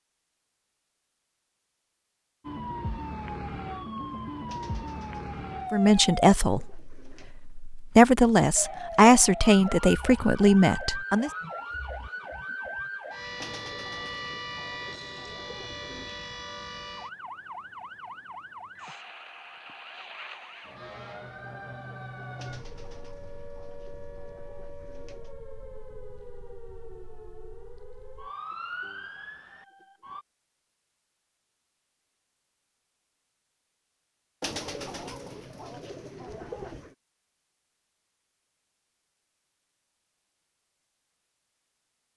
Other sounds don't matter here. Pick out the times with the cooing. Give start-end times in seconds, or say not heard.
4.5-7.3, 13.4-16.1, 22.4-25.4, 34.4-37.0.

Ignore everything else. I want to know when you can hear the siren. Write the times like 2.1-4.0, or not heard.
2.4-6.2, 8.6-30.2.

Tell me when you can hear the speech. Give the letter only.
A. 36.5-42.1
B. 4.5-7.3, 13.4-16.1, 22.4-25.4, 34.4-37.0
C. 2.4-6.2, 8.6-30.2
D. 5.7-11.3
D.